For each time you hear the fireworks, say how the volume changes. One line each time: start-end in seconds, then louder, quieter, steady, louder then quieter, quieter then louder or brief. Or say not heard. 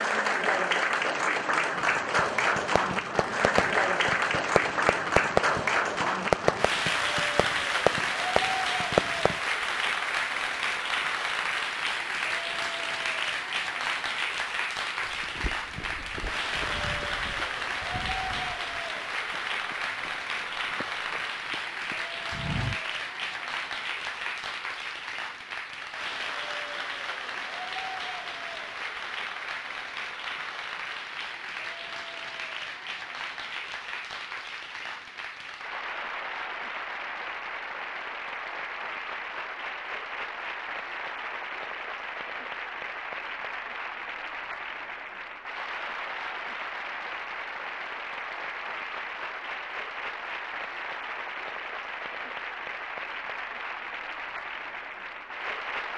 1.8-9.4 louder.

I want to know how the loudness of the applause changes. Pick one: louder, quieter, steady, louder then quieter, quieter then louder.
quieter.